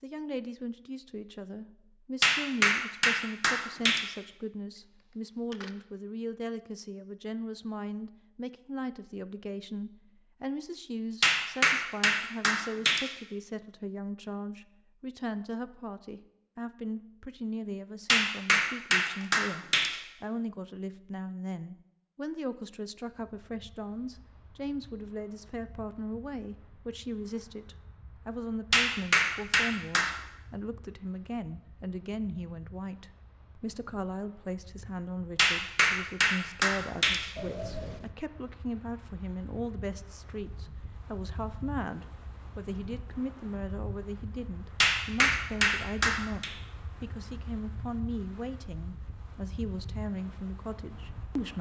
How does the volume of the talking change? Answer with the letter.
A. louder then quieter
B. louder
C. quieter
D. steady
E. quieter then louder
D.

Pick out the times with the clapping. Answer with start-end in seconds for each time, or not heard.
2.2-4.0, 11.2-13.1, 18.1-19.9, 28.7-30.1, 35.4-37.2, 44.8-46.5.